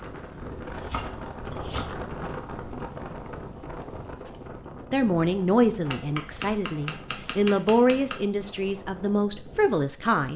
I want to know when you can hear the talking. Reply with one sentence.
The talking can be heard from 4.9 to 10.3 s.